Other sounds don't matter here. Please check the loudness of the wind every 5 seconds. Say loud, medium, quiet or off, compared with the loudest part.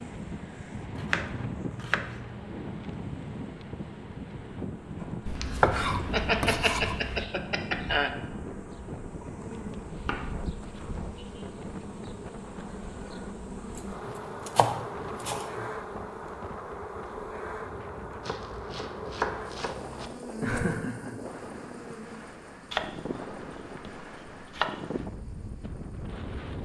loud, loud, medium, medium, loud, loud.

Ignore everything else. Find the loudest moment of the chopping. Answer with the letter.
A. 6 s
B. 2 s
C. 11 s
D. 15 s
A.